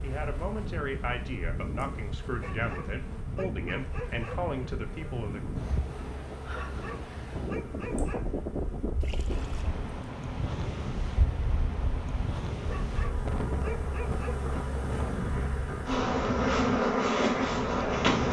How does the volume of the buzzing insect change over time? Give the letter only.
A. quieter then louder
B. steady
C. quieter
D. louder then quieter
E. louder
E.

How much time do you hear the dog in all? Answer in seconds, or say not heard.
6 s.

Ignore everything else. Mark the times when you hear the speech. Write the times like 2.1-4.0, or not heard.
0.0-5.5.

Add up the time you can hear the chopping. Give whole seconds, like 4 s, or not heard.
not heard.